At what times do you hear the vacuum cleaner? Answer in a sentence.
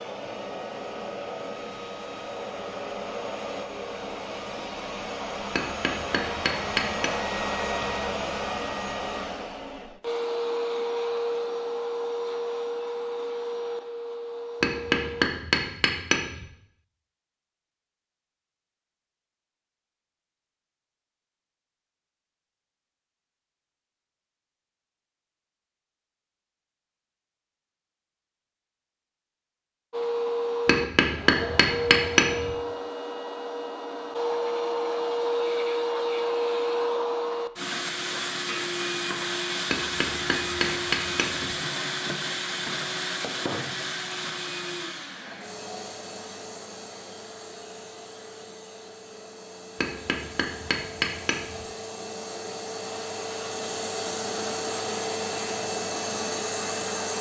You can hear the vacuum cleaner from 0.0 to 15.2 s and from 29.9 to 57.1 s.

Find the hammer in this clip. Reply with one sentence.
You can hear the hammer from 5.5 to 7.1 s, from 14.6 to 16.4 s, from 30.6 to 32.5 s, from 39.7 to 41.5 s and from 49.8 to 51.6 s.